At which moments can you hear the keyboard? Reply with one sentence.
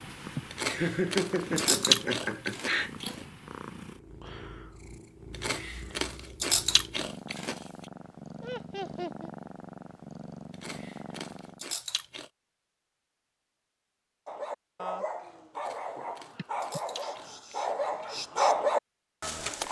The keyboard can't be heard in this clip.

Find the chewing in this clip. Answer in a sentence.
The chewing can be heard from 0.5 to 3.2 s, from 5.3 to 7.6 s, from 10.5 to 12.3 s and from 15.6 to 17.8 s.